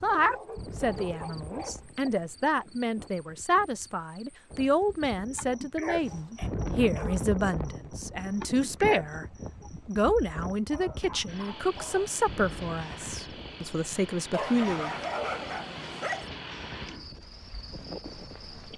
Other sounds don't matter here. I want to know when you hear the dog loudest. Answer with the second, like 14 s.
15 s.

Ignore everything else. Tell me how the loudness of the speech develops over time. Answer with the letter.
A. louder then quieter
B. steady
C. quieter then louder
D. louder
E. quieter
B.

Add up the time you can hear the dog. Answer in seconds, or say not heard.
7 s.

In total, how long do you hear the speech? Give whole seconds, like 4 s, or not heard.
14 s.